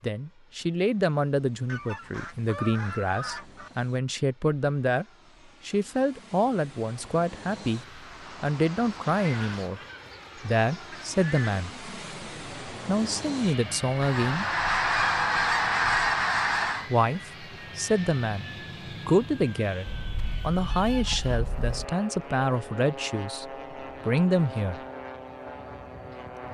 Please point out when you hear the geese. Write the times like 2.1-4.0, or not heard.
1.6-3.7, 9.1-11.7, 14.0-16.9, 19.9-21.9.